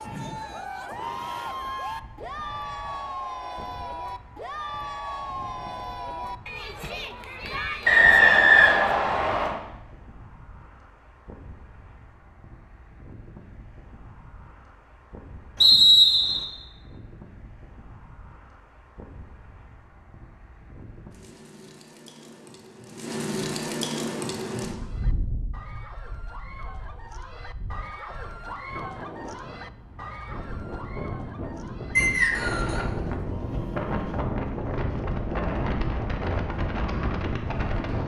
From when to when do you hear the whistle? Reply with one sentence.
You can hear the whistle from 7.8 to 9.6 s, from 15.6 to 16.4 s and from 31.9 to 32.8 s.